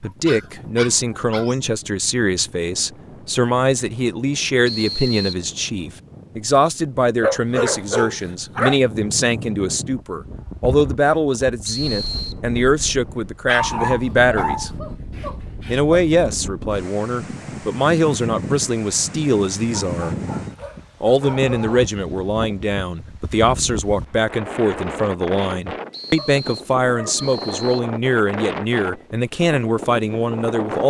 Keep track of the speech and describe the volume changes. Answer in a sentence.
The volume of the speech stays about the same.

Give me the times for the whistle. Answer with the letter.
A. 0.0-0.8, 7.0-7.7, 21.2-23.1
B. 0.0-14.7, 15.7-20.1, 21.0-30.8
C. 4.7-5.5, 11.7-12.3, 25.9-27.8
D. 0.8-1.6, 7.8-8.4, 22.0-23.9
C.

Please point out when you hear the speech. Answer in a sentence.
The speech can be heard from 0.0 to 14.7 s, from 15.7 to 20.1 s and from 21.0 to 30.8 s.